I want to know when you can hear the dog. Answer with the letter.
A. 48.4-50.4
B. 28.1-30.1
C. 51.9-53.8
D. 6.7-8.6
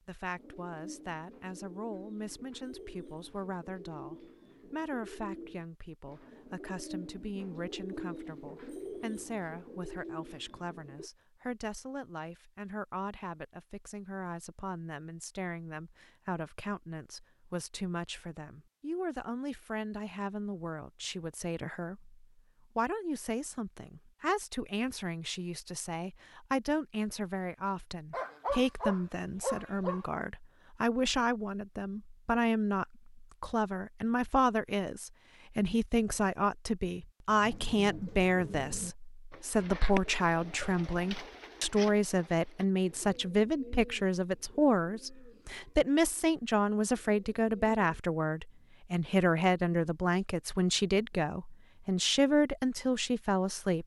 B.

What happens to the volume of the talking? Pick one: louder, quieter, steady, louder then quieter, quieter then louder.
louder.